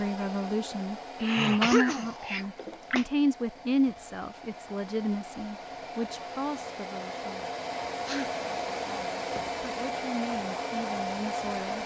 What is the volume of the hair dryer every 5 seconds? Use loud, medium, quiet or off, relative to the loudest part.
medium, loud, loud.